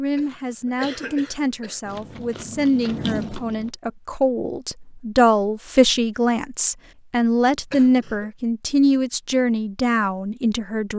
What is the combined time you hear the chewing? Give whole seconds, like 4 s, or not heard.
2 s.